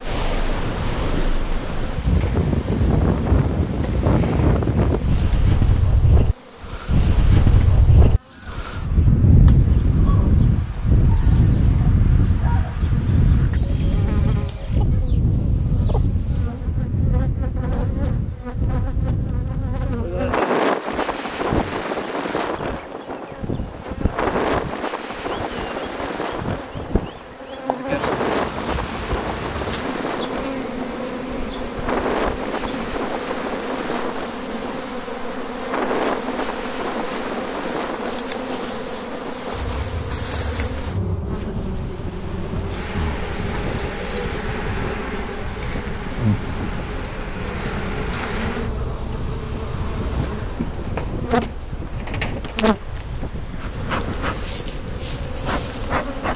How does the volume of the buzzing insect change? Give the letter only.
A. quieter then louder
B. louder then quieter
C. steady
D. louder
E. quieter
D.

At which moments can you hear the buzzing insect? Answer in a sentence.
You can hear the buzzing insect from 0.0 to 56.3 s.